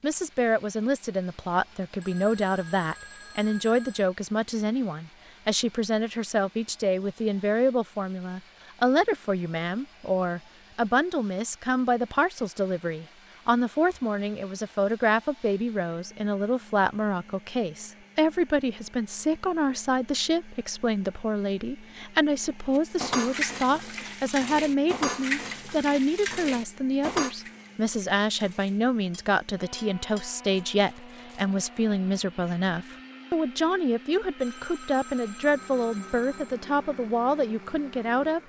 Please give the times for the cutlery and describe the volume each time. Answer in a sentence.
The cutlery can be heard from 22.8 to 31.6 s, getting quieter.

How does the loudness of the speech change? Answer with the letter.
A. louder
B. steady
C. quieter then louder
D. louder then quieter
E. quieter
B.